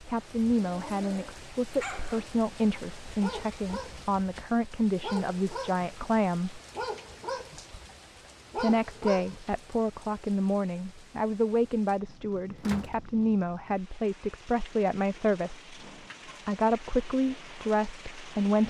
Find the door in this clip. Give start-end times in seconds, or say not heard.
12.6-13.1.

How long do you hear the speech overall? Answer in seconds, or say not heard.
16 s.